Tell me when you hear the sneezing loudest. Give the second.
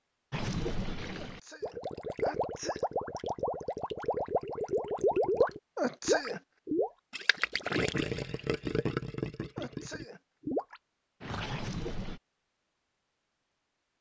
6 s.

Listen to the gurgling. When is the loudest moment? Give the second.
5 s.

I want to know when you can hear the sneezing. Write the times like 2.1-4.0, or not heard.
1.1-2.9, 5.8-6.4, 9.6-10.6.